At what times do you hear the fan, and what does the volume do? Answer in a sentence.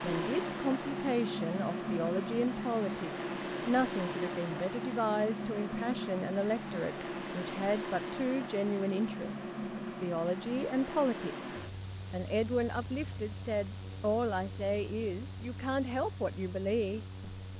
The fan can be heard from 0.0 to 17.5 s, getting quieter.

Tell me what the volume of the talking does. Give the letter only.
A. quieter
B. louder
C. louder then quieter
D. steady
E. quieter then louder
D.